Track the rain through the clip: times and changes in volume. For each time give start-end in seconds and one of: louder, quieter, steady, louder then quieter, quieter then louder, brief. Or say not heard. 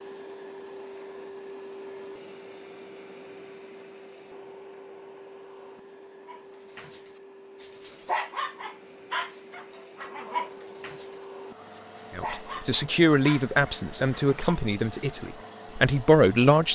not heard.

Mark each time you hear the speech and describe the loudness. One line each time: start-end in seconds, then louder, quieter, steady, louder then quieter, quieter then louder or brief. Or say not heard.
12.2-16.6 quieter then louder.